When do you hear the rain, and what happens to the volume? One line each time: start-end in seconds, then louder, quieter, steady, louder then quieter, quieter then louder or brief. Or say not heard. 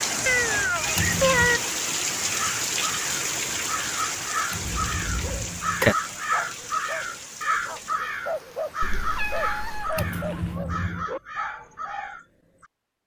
0.0-10.6 quieter.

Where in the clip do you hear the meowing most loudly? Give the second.
1 s.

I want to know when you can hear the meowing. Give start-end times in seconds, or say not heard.
0.2-1.6, 4.6-5.5, 8.8-10.1.